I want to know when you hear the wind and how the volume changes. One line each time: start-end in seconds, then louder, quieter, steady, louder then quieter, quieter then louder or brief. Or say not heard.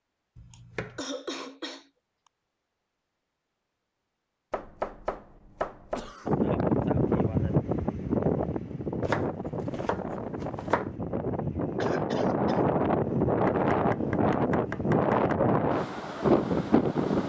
6.2-17.2 quieter then louder.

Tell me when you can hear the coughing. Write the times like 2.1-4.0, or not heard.
0.5-1.9, 6.0-6.4, 11.8-12.6.